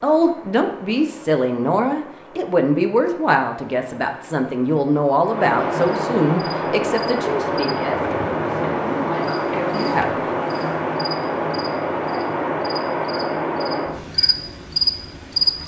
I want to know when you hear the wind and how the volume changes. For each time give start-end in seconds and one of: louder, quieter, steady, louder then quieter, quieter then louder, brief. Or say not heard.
0.0-15.6 louder.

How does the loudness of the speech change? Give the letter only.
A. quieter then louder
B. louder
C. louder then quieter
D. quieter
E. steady
D.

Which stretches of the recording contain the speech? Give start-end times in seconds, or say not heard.
0.0-10.2.